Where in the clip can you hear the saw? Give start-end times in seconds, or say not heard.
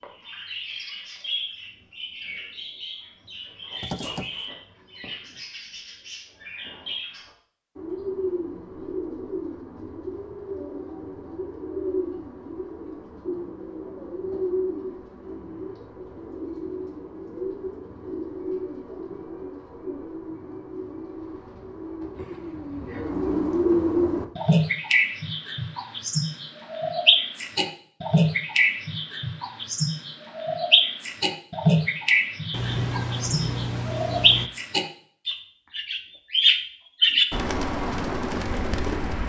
not heard.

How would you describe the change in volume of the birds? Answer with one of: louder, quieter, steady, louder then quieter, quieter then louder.
louder.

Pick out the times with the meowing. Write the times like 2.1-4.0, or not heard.
3.8-4.3, 22.1-23.1, 32.5-34.5.